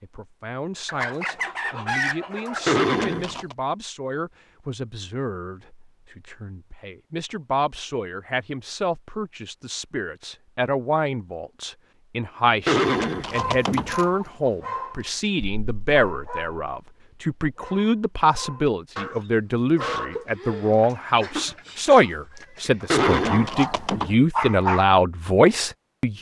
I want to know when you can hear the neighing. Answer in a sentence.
You can hear the neighing from 2.6 to 3.5 s, from 12.7 to 13.9 s and from 22.9 to 24.1 s.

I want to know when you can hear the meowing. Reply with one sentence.
The meowing can't be heard in this clip.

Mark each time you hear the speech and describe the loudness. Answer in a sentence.
You can hear the speech from 0.0 to 26.1 s, getting louder.